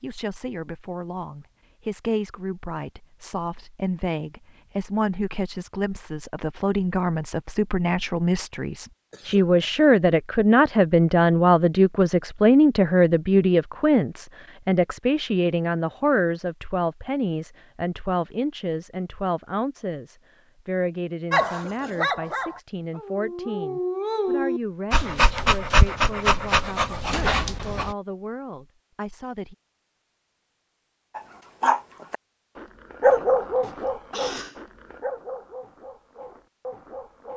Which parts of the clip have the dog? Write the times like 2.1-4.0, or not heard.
21.3-27.9, 31.1-37.3.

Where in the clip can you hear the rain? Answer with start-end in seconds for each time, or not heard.
not heard.